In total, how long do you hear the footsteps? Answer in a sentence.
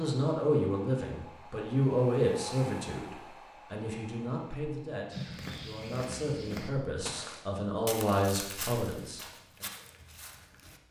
You can hear the footsteps for 6 seconds altogether.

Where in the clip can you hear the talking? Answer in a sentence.
The talking can be heard from 0.0 to 9.7 s.